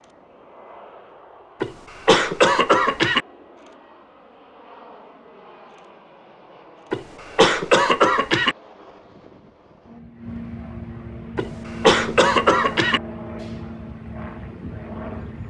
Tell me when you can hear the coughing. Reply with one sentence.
The coughing can be heard from 1.6 to 3.2 s, from 6.9 to 8.6 s and from 11.3 to 13.0 s.